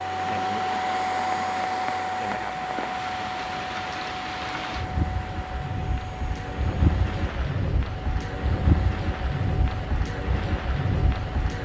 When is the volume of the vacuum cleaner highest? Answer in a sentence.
The loudest moment of the vacuum cleaner is at 1 second.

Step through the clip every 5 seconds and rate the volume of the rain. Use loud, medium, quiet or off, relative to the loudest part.
medium, loud, loud.